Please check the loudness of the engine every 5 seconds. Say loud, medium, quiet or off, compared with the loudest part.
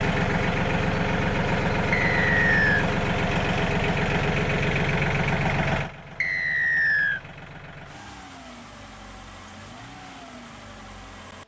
loud, medium, quiet.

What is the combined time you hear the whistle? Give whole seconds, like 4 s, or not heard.
2 s.